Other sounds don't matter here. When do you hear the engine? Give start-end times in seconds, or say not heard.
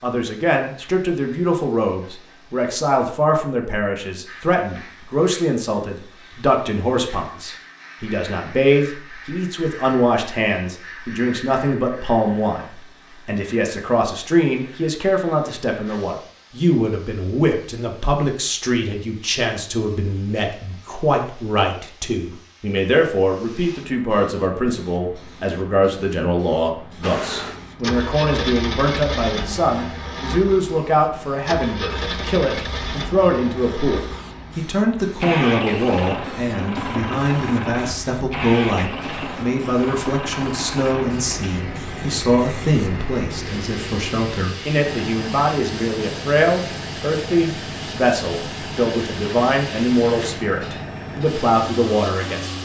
27.0-52.5.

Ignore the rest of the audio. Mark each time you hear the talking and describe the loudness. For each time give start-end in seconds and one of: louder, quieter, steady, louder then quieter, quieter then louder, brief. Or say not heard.
0.0-52.5 steady.